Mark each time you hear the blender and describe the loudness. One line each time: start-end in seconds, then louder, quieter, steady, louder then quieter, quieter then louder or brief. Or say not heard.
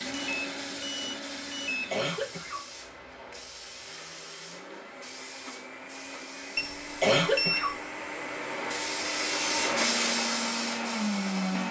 0.0-11.6 quieter then louder.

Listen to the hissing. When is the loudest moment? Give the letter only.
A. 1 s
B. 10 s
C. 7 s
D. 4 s
B.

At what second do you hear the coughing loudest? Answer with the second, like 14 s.
7 s.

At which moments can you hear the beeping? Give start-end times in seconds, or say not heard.
0.1-1.9, 6.5-7.8.